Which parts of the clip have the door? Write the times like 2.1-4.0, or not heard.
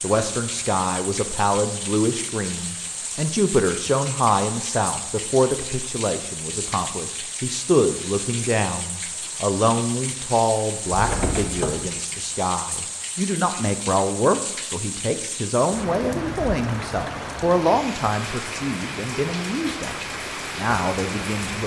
10.9-11.9.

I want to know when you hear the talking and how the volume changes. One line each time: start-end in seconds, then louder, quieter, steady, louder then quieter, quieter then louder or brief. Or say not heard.
0.0-21.6 steady.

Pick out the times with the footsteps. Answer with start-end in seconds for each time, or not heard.
not heard.